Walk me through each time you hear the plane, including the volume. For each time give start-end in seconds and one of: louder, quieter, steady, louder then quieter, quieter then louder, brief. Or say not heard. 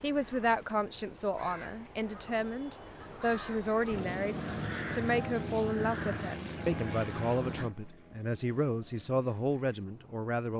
3.9-10.3 quieter.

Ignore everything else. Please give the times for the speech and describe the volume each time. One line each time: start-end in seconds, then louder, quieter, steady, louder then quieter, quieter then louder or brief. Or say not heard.
0.0-10.5 steady.